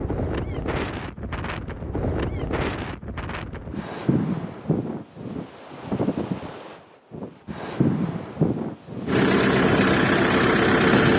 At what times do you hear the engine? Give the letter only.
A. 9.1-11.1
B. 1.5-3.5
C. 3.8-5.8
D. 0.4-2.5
A.